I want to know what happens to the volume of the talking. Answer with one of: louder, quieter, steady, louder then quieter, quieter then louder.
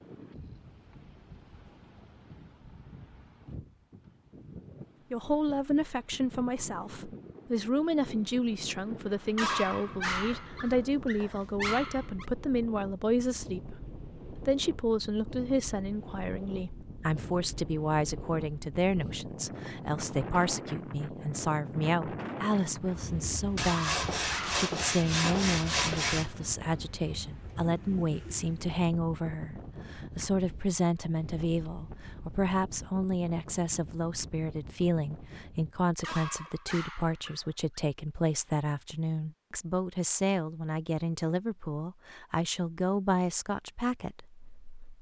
steady.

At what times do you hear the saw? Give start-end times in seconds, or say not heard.
23.6-26.4.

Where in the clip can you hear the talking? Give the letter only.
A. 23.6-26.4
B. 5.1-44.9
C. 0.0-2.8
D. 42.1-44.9
B.